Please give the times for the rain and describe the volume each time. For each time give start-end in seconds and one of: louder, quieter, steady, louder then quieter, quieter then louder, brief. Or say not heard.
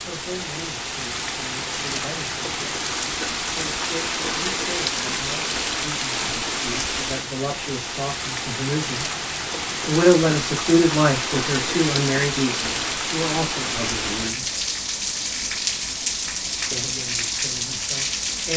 0.0-18.5 steady.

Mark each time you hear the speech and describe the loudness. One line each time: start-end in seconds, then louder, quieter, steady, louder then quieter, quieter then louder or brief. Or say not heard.
0.1-9.1 louder
9.8-14.4 quieter
16.7-18.5 brief.